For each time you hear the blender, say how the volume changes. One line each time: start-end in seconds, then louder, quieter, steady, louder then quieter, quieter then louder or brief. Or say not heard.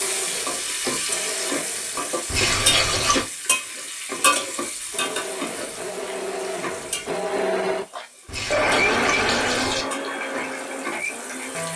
0.0-2.2 brief
4.7-11.7 louder then quieter.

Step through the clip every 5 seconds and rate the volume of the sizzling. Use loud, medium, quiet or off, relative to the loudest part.
loud, medium, medium.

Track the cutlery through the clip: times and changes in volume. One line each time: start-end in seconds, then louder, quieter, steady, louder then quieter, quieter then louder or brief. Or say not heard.
not heard.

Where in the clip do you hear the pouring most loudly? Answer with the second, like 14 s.
3 s.